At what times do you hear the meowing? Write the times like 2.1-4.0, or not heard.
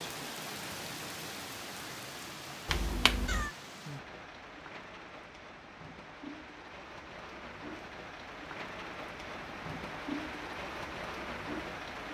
2.6-3.5.